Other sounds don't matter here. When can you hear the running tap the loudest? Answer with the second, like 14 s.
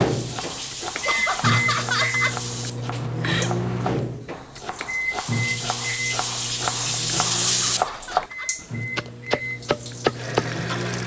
7 s.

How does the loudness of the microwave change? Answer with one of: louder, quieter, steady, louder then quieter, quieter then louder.
quieter.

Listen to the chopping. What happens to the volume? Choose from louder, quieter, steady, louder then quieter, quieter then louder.
louder.